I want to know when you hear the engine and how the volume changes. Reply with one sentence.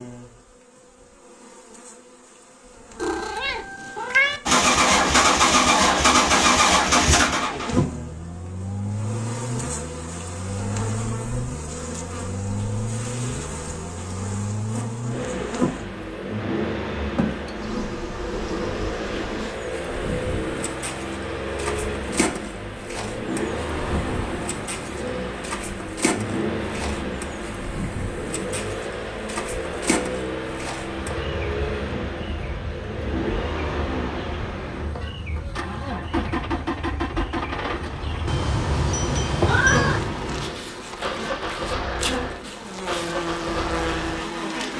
You can hear the engine from 4.5 to 44.7 s, getting quieter.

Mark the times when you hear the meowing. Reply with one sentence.
You can hear the meowing from 3.0 to 4.4 s and from 38.2 to 40.1 s.